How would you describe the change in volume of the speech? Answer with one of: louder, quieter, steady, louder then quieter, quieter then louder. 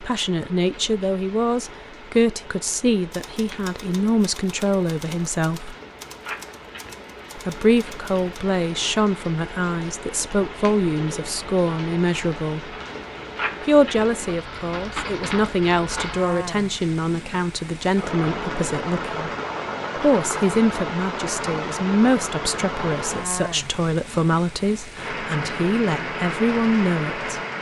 steady.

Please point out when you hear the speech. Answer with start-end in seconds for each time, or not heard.
0.0-5.8, 7.3-12.6, 13.6-19.3, 19.9-27.4.